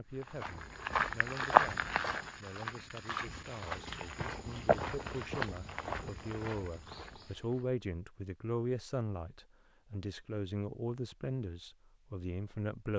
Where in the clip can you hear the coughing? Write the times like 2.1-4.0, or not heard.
not heard.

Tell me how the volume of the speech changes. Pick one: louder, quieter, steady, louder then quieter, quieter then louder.
louder.